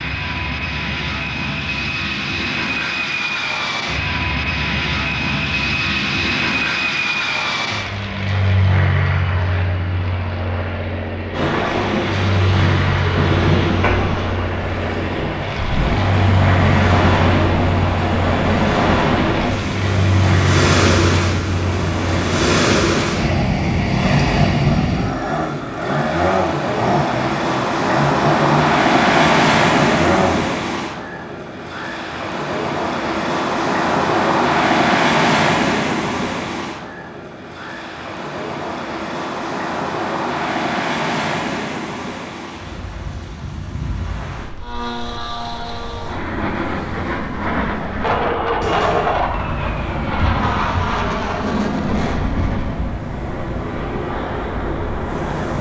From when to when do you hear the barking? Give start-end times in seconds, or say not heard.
not heard.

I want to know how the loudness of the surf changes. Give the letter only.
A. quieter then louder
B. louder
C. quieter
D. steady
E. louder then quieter
C.